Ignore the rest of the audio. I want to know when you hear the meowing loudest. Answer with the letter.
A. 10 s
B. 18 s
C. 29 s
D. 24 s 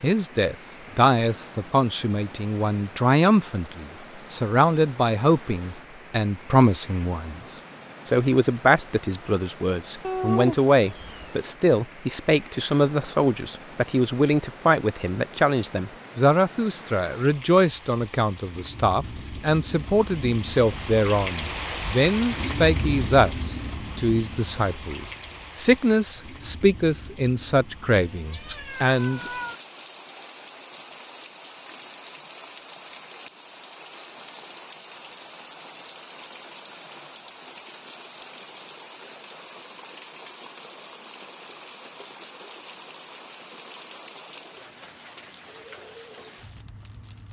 A.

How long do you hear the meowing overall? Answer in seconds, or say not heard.
3 s.